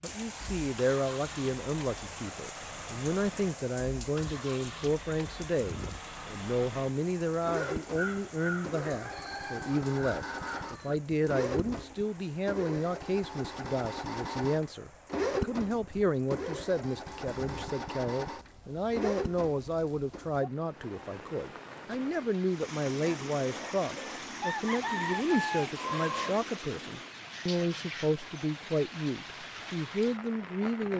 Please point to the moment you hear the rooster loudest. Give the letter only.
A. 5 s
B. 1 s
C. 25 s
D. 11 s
C.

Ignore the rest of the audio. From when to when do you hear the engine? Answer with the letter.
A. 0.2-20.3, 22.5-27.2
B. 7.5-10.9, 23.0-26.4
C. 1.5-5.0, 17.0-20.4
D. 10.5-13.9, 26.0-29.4
A.